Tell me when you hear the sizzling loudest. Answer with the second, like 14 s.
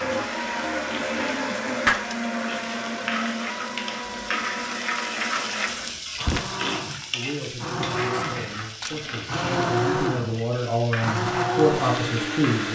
5 s.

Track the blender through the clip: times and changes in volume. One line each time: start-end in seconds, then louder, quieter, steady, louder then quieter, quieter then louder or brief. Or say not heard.
0.0-12.7 quieter then louder.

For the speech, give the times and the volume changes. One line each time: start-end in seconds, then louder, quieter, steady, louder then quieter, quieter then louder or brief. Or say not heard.
7.1-12.7 louder.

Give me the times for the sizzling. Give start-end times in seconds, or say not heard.
0.0-12.7.